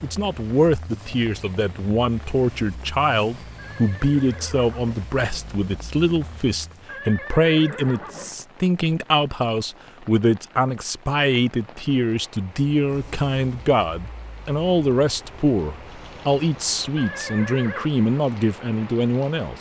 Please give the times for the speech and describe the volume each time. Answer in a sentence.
You can hear the speech from 0.0 to 19.5 s, at a steady volume.